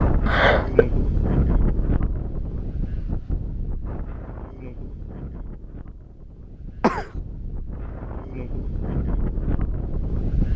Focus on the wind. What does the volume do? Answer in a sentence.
The loudness of the wind goes down, then up.